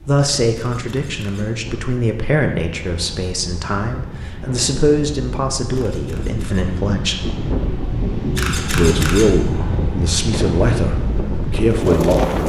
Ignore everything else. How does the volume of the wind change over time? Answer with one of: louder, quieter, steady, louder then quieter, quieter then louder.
louder.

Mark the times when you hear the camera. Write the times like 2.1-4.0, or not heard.
0.6-1.4, 5.7-6.7, 8.3-9.2.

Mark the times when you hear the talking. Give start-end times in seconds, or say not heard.
0.1-7.2, 8.7-12.4.